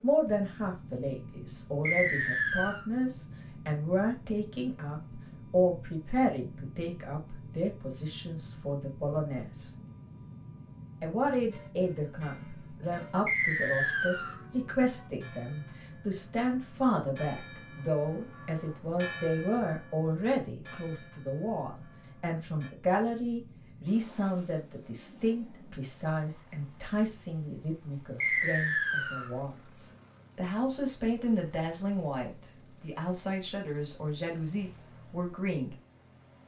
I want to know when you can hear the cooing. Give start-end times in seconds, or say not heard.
not heard.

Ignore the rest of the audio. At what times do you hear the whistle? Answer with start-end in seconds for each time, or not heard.
1.9-2.9, 13.2-14.4, 28.2-29.3.